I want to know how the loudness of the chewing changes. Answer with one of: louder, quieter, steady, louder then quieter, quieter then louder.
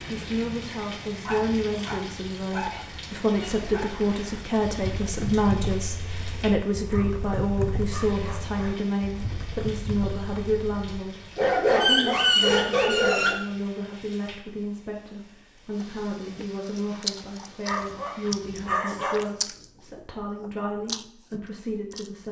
quieter then louder.